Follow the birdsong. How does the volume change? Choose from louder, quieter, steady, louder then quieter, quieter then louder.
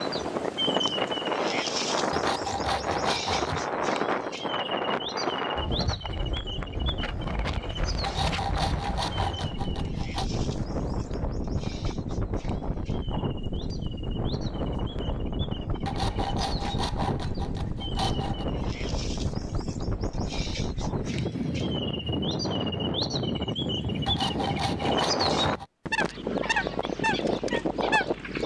quieter then louder.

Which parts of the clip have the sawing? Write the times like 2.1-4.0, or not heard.
2.1-3.7, 8.0-10.3, 15.8-18.4, 24.1-25.6.